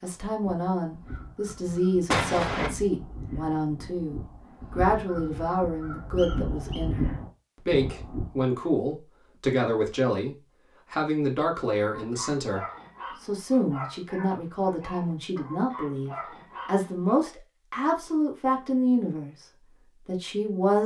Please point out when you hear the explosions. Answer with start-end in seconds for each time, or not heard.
2.1-2.7.